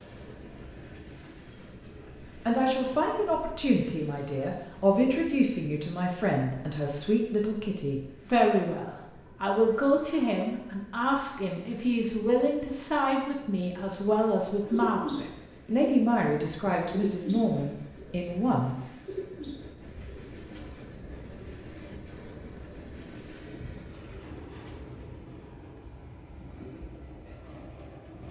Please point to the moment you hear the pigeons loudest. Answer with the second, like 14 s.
15 s.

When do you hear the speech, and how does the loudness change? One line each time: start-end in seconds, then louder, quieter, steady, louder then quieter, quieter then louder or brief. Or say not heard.
2.5-18.8 steady.